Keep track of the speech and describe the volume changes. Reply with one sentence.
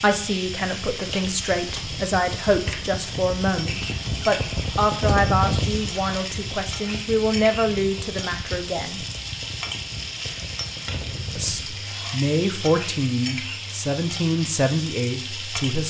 The loudness of the speech stays about the same.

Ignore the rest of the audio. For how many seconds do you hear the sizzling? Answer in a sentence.
The sizzling can be heard for 16 seconds in total.